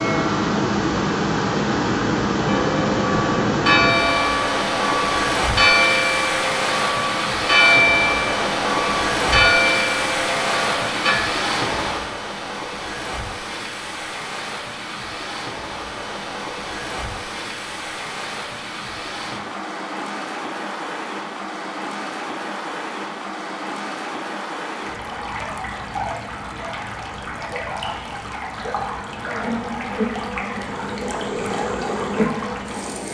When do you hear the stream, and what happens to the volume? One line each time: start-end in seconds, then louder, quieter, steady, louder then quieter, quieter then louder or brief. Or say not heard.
0.0-33.1 quieter.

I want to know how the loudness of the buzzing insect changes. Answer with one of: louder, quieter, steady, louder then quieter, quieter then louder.
quieter then louder.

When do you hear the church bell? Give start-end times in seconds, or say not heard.
2.5-11.2.